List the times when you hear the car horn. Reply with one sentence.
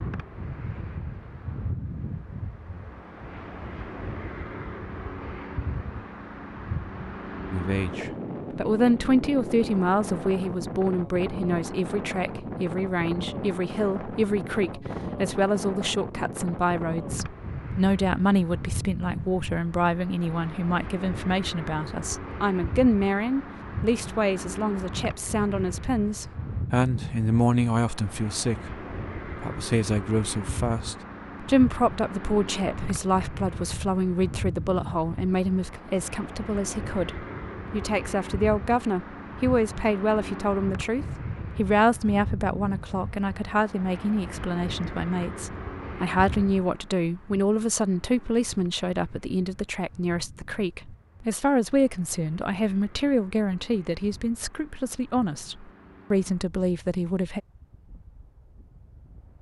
You can't hear the car horn here.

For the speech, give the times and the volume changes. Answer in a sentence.
The speech can be heard from 7.5 to 57.4 s, at a steady volume.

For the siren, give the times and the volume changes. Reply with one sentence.
The siren can't be heard in this clip.